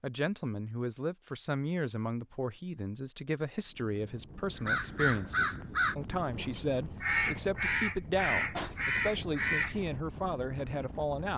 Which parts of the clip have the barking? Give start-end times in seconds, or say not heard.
not heard.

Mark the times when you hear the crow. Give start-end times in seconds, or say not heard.
4.5-9.8.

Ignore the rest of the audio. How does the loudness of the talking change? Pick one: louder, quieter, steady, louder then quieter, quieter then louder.
steady.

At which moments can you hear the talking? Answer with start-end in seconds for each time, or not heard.
0.0-11.3.